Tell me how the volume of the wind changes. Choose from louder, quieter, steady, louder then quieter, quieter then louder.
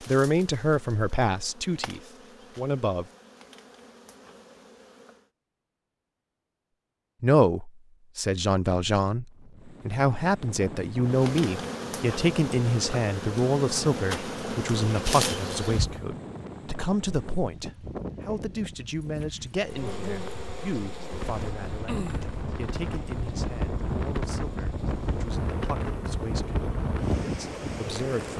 louder.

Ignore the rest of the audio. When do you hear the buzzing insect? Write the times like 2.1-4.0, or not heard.
0.0-5.3, 11.1-16.1, 19.6-28.3.